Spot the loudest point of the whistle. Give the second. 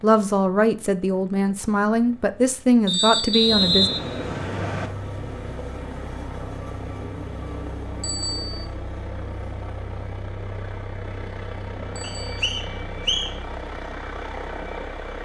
4 s.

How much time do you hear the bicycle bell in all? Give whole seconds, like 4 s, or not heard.
2 s.